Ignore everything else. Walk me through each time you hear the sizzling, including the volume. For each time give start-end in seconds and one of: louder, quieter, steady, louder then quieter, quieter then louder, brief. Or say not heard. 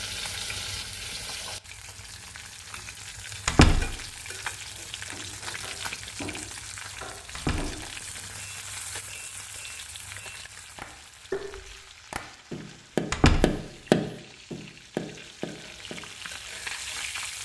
0.0-17.4 quieter then louder.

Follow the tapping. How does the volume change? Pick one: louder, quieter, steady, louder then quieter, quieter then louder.
louder.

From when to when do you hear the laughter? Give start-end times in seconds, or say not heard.
not heard.